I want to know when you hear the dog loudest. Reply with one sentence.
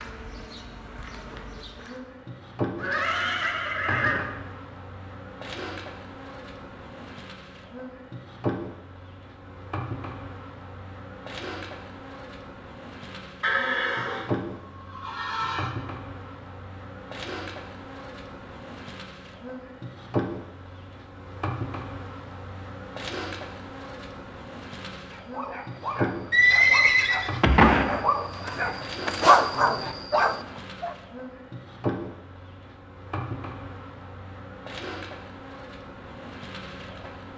The loudest moment of the dog is at 29 seconds.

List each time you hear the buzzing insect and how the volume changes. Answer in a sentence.
You can hear the buzzing insect from 0.0 to 37.3 s, at a steady volume.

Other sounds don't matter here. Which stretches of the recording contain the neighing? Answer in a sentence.
You can hear the neighing from 2.8 to 4.2 s, from 13.4 to 15.7 s and from 26.3 to 28.0 s.